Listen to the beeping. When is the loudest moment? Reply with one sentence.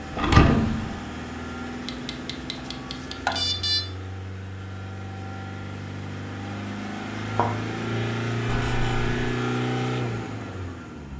The loudest moment of the beeping is at 3 seconds.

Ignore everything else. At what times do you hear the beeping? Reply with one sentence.
The beeping can be heard from 1.9 to 3.8 s and from 8.4 to 9.3 s.